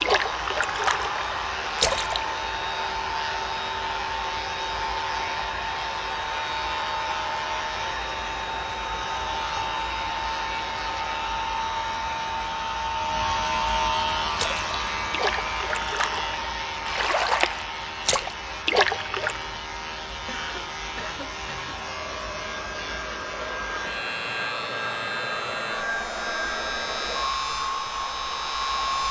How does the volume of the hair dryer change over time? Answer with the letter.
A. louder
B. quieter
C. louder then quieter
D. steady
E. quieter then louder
E.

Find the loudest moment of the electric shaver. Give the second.
14 s.